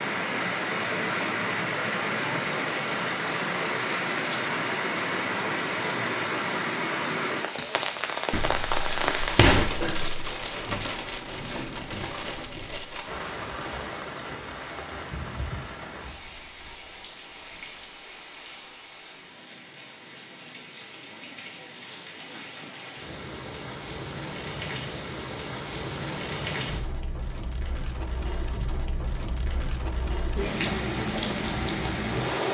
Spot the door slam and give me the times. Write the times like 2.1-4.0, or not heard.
8.3-10.2.